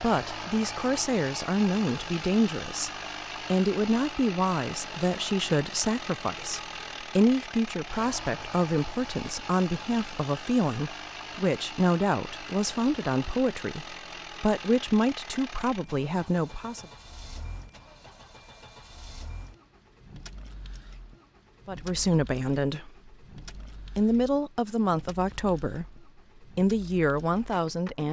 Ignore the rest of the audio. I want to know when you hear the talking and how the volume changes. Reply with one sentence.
The talking can be heard briefly from 0.0 to 2.9 s; from 3.5 to 16.9 s, at a steady volume; briefly from 21.6 to 23.1 s; and from 23.9 to 28.0 s, getting quieter then louder.